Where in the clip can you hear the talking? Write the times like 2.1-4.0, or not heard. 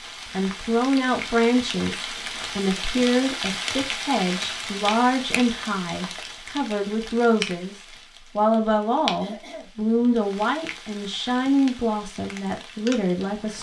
0.3-7.8, 8.3-13.5.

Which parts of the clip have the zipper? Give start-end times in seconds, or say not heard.
not heard.